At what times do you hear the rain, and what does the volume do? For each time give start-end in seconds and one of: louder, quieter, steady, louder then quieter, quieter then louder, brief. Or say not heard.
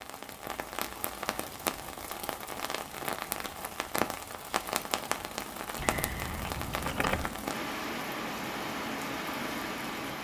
0.0-10.2 steady.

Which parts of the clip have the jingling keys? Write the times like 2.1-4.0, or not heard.
1.2-1.8, 5.8-7.3.